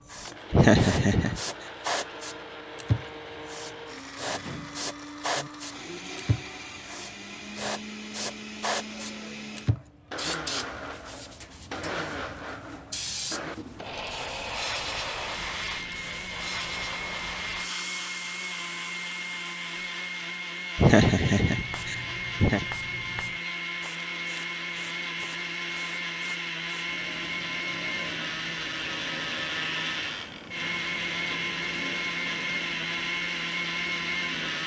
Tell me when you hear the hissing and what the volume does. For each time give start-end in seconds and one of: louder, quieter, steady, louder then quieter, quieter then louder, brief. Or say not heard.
0.0-34.6 quieter.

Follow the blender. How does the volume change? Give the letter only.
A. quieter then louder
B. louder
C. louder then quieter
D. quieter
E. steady
B.